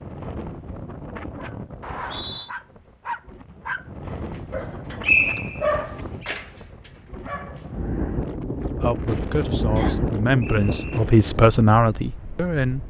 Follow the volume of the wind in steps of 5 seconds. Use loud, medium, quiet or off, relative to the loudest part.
medium, loud, loud.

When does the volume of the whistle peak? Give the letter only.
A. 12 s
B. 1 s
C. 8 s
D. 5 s
D.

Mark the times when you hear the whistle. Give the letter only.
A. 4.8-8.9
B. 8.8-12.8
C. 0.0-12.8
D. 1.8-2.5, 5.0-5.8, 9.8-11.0
D.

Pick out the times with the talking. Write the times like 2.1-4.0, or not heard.
8.8-12.8.